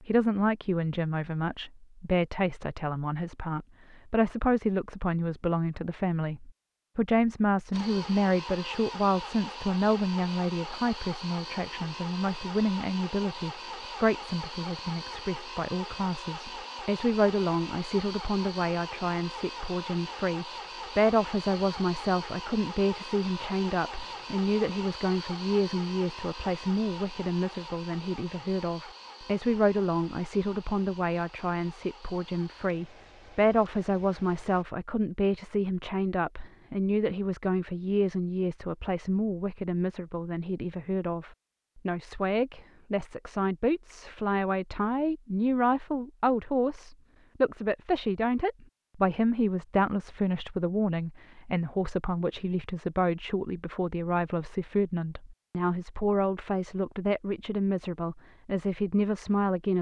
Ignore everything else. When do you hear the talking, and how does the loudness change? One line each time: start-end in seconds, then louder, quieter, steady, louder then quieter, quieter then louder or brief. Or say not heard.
0.0-59.7 steady.